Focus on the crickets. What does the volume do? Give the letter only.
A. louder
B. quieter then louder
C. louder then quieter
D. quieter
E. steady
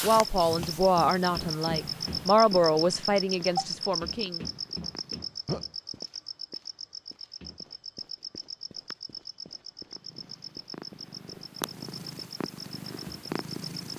D.